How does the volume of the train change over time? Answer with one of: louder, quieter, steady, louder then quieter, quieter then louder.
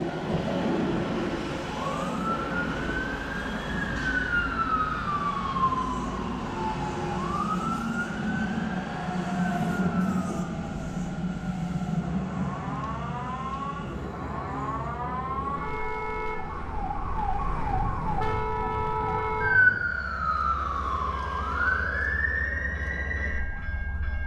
quieter.